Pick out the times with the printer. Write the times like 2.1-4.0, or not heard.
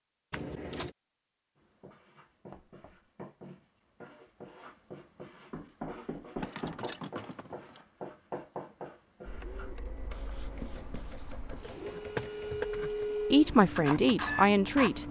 9.2-15.0.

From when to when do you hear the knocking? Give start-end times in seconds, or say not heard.
2.5-3.1, 5.5-6.8, 10.6-12.6.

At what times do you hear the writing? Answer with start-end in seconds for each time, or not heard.
1.6-11.8.